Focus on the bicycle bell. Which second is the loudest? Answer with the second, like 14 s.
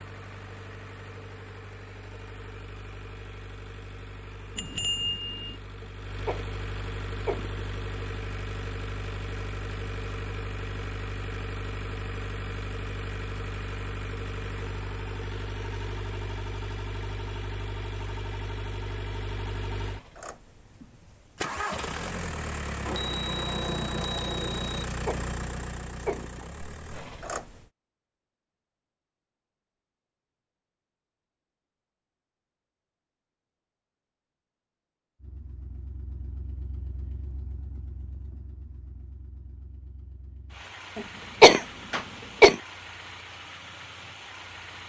5 s.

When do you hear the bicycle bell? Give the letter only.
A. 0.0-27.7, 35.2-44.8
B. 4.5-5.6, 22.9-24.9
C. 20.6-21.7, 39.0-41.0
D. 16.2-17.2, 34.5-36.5
B.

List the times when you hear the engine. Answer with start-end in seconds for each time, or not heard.
0.0-27.7, 35.2-44.8.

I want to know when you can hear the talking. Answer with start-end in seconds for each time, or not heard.
not heard.